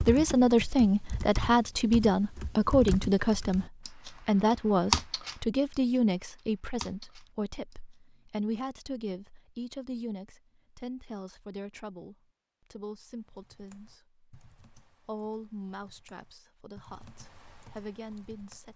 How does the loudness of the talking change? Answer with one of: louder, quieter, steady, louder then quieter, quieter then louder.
quieter.